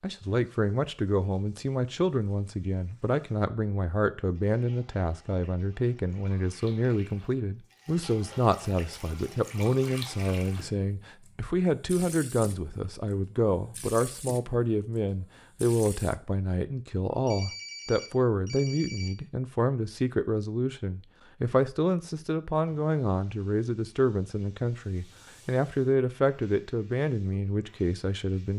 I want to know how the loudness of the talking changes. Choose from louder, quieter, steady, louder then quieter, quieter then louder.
steady.